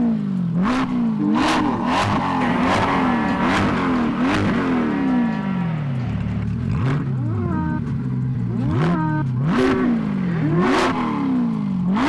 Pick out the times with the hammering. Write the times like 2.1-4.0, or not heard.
not heard.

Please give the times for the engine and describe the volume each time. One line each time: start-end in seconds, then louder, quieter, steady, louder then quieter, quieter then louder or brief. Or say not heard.
0.0-12.0 steady.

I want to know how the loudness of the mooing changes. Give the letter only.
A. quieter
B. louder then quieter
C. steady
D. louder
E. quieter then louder
E.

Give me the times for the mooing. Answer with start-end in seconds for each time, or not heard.
1.1-10.9.